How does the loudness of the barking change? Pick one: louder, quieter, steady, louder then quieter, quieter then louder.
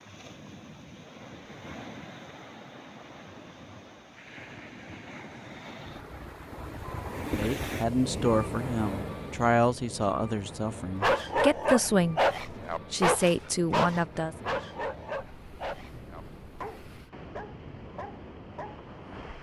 quieter.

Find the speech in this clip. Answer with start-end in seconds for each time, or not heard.
7.3-14.3.